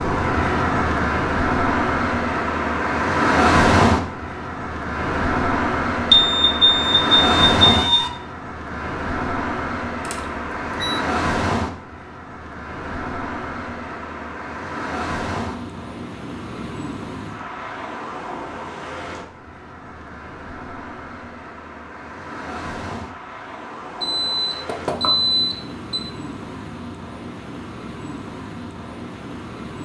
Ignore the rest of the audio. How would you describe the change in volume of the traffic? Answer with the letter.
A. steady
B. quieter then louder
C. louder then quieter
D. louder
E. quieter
E.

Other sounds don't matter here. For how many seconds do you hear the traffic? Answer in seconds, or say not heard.
30 s.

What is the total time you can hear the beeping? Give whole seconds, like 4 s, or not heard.
5 s.